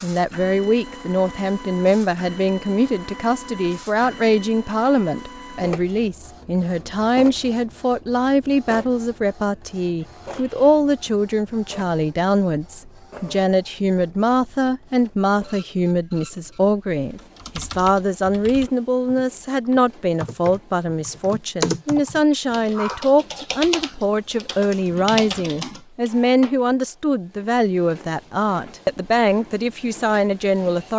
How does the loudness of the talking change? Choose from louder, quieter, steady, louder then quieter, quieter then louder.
steady.